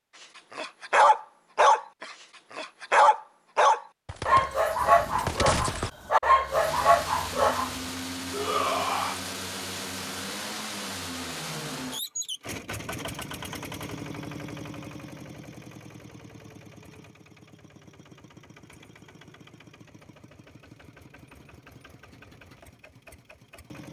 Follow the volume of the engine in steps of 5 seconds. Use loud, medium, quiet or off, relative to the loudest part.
off, loud, loud, quiet, quiet.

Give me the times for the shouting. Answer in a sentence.
You can hear the shouting from 8.3 to 9.2 s.